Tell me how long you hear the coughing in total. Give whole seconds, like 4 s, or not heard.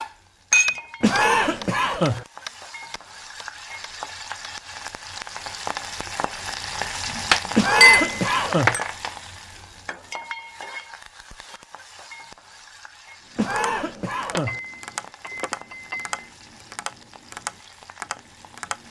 4 s.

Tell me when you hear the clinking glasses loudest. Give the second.
8 s.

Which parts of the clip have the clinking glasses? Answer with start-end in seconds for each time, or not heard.
0.5-1.3, 7.3-9.1, 14.3-16.2.